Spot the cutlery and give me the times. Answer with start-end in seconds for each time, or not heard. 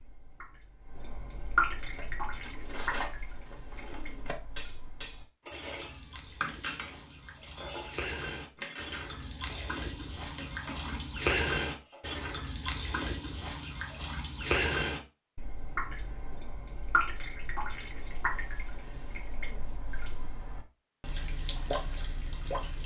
1.9-12.2.